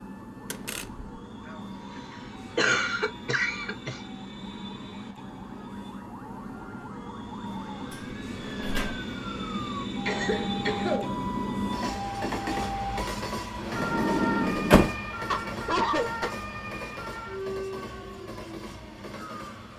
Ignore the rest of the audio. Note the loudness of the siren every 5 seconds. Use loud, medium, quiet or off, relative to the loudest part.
quiet, medium, loud, loud.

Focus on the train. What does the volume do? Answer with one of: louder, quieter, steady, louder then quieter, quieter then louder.
louder then quieter.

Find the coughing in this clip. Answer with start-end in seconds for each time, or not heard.
2.5-4.0, 10.1-11.2, 15.3-16.3.